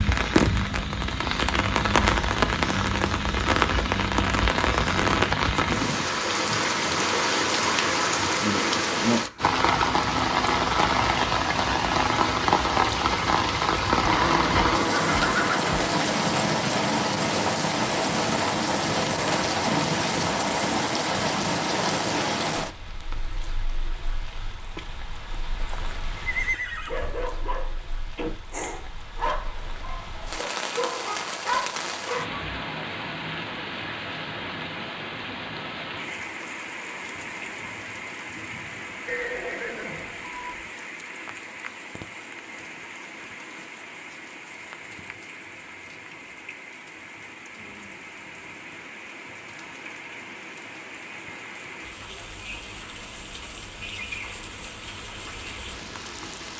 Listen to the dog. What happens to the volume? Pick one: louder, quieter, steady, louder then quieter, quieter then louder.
louder.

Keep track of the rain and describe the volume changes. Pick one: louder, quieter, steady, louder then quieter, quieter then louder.
quieter.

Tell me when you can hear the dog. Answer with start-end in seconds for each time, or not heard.
26.9-32.4.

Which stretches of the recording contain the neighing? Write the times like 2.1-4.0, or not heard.
14.0-15.7, 25.6-27.2, 39.0-40.6.